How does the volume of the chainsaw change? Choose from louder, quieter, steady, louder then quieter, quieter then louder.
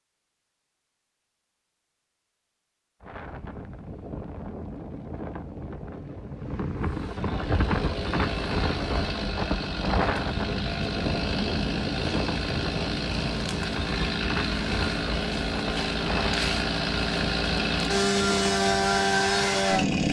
louder.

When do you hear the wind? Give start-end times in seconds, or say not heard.
3.0-19.9.